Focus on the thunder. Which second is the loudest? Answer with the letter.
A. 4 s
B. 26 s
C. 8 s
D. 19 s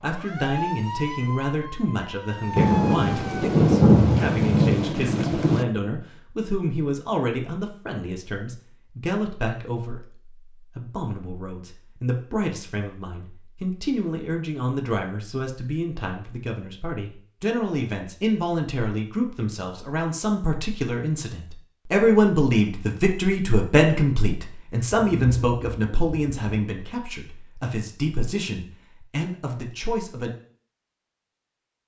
A.